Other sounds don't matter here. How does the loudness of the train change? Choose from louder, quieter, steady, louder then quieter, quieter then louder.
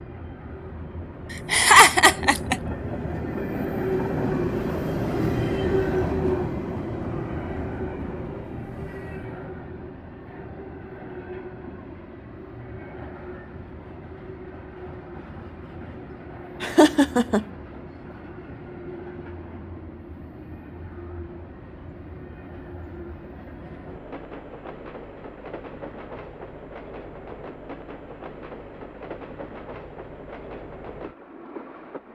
quieter.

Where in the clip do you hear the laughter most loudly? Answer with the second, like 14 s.
2 s.